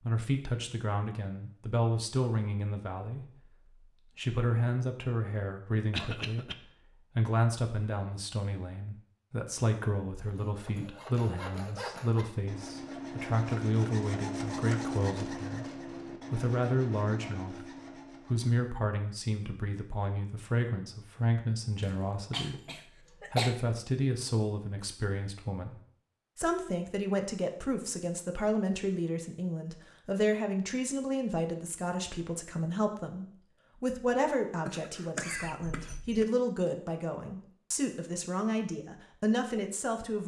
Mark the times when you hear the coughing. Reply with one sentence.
You can hear the coughing from 5.9 to 6.5 s, from 21.8 to 23.6 s and from 34.6 to 36.2 s.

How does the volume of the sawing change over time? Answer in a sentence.
The loudness of the sawing goes up, then down.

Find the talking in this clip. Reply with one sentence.
The talking can be heard from 0.0 to 15.7 s, from 16.3 to 17.6 s, from 18.2 to 25.8 s and from 26.4 to 40.2 s.